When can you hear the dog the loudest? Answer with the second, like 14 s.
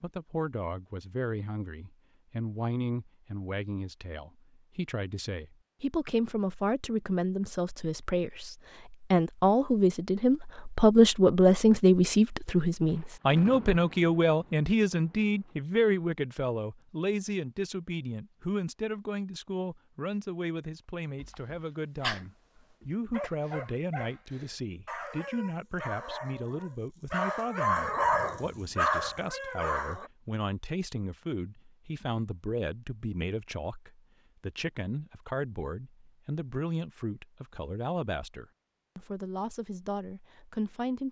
28 s.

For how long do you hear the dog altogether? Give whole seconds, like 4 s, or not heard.
9 s.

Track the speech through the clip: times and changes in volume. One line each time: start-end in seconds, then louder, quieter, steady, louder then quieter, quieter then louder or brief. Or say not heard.
0.0-41.0 louder then quieter.